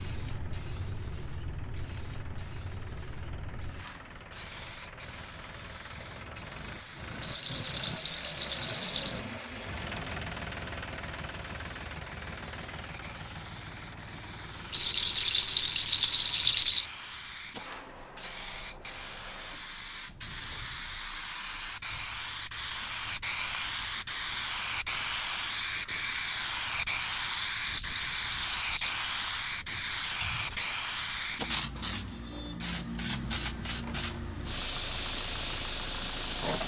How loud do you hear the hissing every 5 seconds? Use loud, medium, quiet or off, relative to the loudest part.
quiet, quiet, quiet, medium, loud, loud, loud, loud.